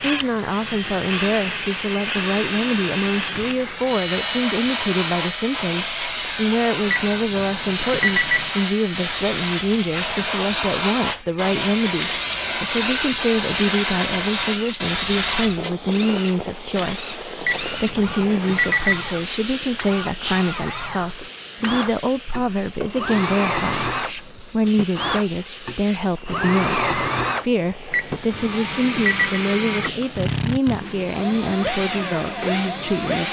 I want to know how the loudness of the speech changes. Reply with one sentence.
The volume of the speech stays about the same.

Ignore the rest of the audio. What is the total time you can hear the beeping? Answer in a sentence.
You can hear the beeping for 5 seconds altogether.